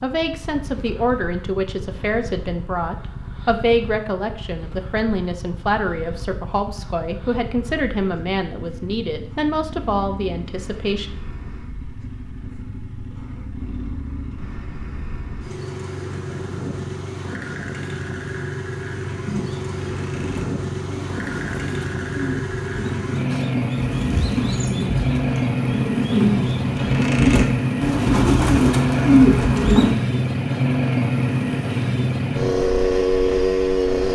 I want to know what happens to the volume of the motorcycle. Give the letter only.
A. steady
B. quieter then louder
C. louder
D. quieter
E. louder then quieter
C.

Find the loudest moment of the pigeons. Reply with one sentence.
The loudest moment of the pigeons is at 29 seconds.